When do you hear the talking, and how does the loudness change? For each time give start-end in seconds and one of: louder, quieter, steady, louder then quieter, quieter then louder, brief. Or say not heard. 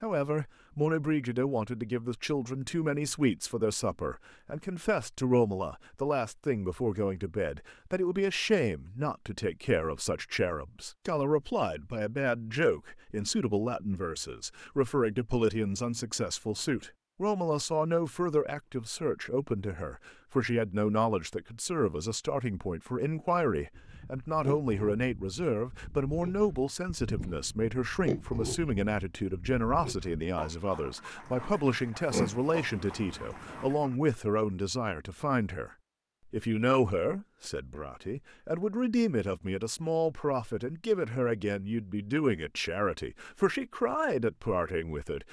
0.0-35.7 steady
36.3-45.2 steady.